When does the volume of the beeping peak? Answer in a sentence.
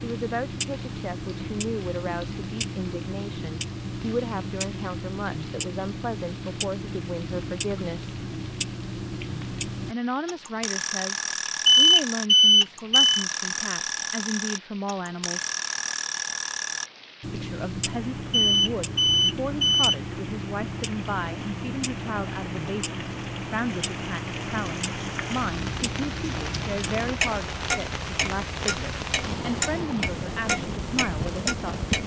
The loudest moment of the beeping is at 12 seconds.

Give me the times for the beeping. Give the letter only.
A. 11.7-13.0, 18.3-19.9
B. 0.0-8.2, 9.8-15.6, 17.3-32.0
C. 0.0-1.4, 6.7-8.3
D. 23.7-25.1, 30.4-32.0
A.